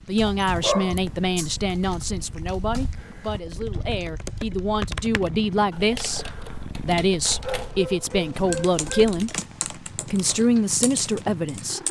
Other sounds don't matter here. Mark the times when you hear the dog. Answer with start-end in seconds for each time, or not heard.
0.4-1.9, 7.2-9.2.